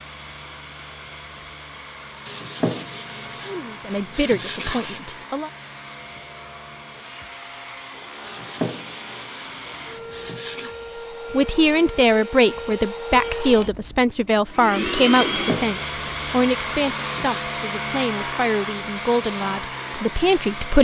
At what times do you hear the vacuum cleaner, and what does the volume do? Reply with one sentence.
The vacuum cleaner can be heard from 0.0 to 20.7 s, getting louder.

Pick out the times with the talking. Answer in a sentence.
You can hear the talking from 3.5 to 5.5 s and from 11.3 to 20.7 s.